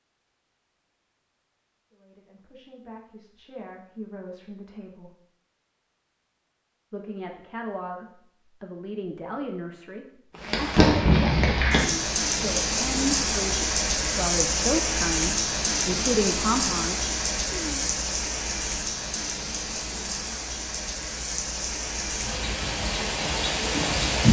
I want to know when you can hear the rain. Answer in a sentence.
You can hear the rain from 10.3 to 24.2 s.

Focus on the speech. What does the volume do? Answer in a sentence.
The loudness of the speech goes up.